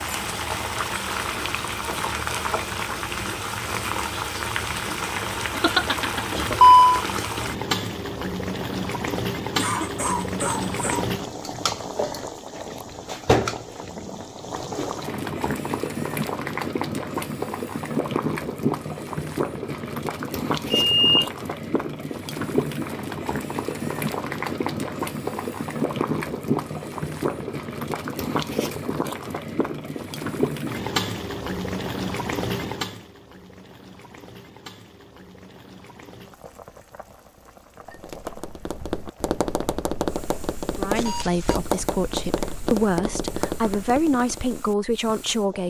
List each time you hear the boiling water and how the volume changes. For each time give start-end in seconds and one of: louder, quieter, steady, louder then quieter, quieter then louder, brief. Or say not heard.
0.0-45.6 quieter.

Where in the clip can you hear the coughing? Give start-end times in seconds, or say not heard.
9.6-11.2.